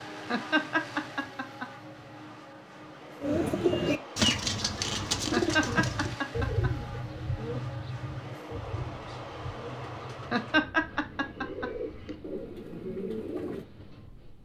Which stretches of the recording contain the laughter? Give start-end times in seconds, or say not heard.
0.3-1.6, 5.3-6.7, 10.3-12.1.